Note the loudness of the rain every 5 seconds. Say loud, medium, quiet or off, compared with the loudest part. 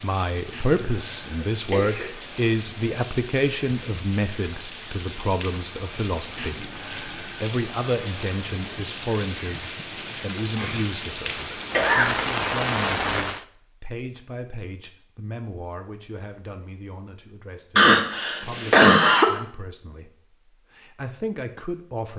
medium, medium, loud, off, off.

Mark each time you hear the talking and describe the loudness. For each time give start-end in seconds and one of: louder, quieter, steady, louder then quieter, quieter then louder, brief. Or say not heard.
0.0-22.1 quieter.